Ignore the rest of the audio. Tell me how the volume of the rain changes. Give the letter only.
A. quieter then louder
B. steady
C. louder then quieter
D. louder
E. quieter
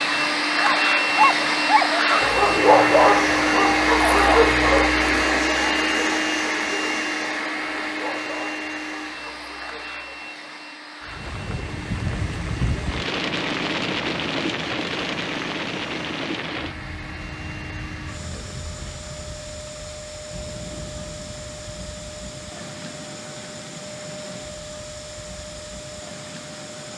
E.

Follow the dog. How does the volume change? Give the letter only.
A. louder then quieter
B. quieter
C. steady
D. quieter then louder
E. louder
B.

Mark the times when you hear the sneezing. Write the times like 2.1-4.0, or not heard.
not heard.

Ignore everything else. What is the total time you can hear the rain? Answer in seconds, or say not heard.
16 s.